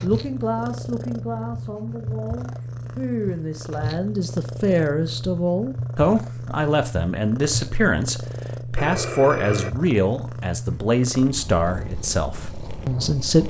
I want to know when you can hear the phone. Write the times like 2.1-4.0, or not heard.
8.8-9.8.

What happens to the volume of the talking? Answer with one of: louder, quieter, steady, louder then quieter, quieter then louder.
louder.